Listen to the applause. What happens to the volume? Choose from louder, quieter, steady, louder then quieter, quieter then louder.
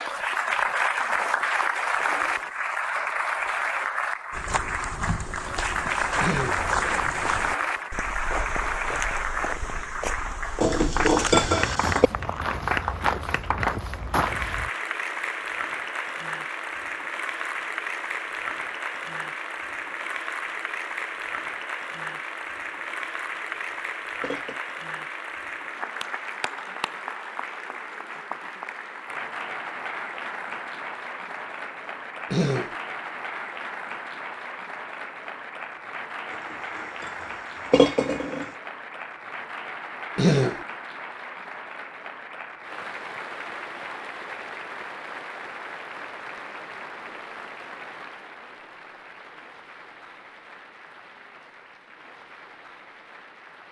quieter.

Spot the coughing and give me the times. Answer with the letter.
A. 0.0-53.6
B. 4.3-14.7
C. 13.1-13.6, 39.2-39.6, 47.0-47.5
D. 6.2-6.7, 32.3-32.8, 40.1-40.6
D.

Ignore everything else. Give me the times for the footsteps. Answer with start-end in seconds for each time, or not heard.
4.3-14.7.